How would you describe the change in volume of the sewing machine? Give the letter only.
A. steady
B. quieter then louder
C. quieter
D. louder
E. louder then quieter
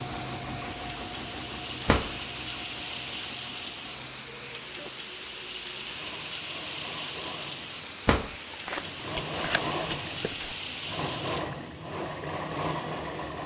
B.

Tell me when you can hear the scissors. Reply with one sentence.
You can hear the scissors from 8.5 to 10.6 s.